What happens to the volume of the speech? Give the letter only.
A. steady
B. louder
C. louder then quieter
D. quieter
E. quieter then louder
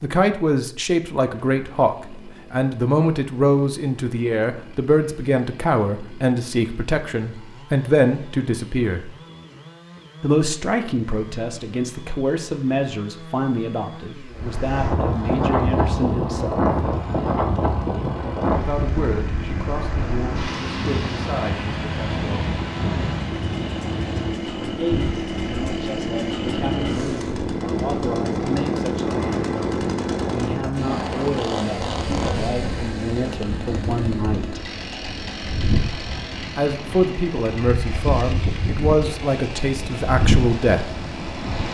E.